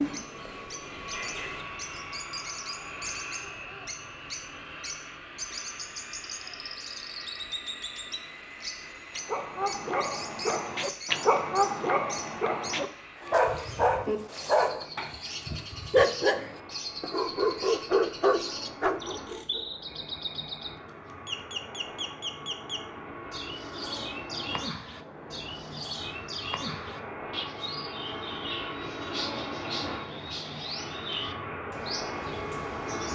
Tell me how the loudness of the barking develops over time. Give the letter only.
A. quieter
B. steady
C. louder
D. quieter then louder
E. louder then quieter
B.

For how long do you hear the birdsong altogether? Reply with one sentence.
The birdsong can be heard for 33 seconds in total.